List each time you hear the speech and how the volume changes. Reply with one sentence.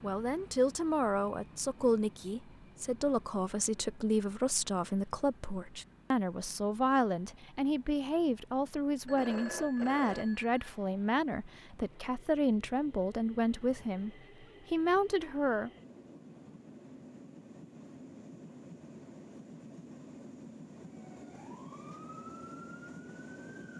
You can hear the speech from 0.0 to 15.7 s, at a steady volume.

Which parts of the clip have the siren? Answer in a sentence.
You can hear the siren from 20.9 to 23.7 s.